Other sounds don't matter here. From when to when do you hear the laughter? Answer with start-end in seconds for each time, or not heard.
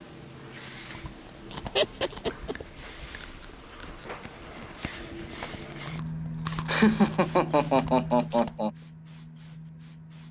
1.8-2.5, 6.7-8.7.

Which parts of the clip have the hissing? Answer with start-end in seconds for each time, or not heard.
0.0-10.2.